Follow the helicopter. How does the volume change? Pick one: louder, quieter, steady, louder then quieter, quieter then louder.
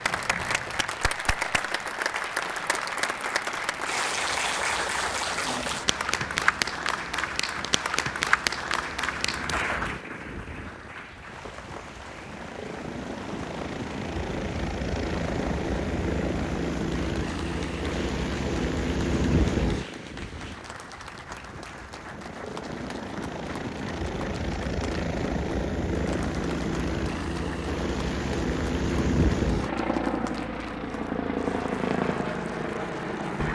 louder.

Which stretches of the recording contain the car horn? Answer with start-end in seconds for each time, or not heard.
not heard.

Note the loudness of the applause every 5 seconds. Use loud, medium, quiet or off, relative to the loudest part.
loud, loud, quiet, quiet, quiet, quiet, quiet.